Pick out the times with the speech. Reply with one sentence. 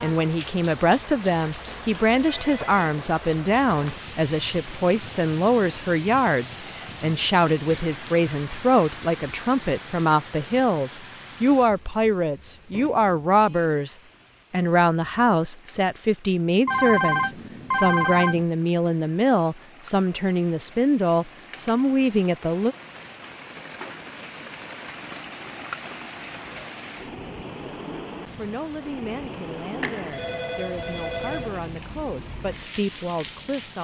You can hear the speech from 0.0 to 22.8 s and from 28.4 to 33.7 s.